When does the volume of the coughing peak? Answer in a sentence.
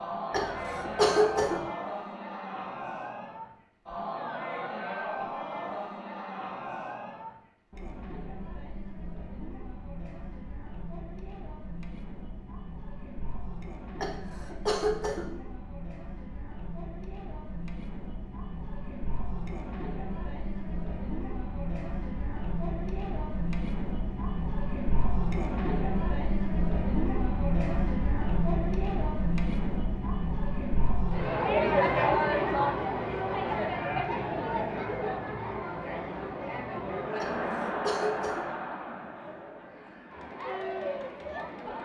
The loudest moment of the coughing is at 1 second.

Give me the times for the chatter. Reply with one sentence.
The chatter can be heard from 0.0 to 41.8 s.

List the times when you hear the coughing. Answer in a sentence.
You can hear the coughing from 0.3 to 1.7 s, from 14.0 to 15.3 s and from 37.2 to 38.5 s.